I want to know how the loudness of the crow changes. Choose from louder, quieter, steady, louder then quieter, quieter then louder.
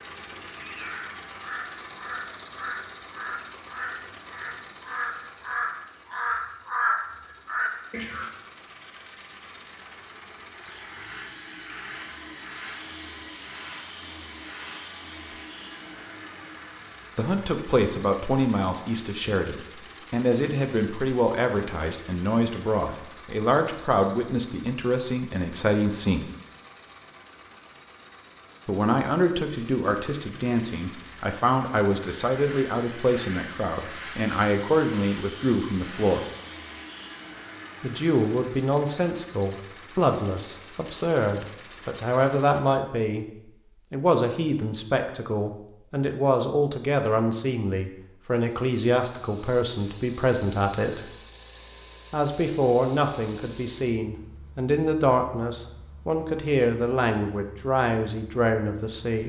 louder.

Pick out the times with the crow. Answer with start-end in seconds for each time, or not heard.
0.6-8.3.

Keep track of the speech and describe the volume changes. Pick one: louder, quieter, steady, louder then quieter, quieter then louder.
steady.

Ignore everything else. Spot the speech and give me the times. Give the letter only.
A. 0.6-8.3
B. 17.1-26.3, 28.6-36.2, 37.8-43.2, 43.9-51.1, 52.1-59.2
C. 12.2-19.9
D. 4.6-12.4
B.